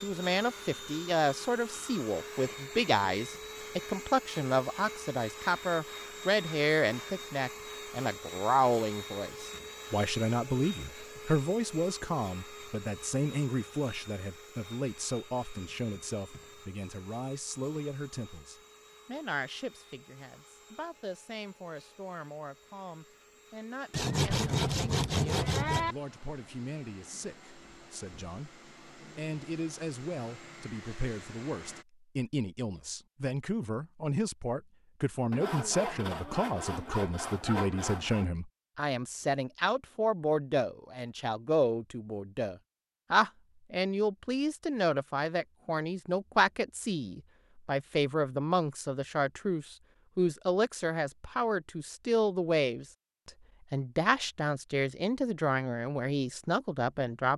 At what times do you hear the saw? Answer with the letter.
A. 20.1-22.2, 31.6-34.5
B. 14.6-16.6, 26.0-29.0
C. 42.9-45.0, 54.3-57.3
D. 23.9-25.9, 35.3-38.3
D.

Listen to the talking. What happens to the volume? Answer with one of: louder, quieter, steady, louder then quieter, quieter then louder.
quieter then louder.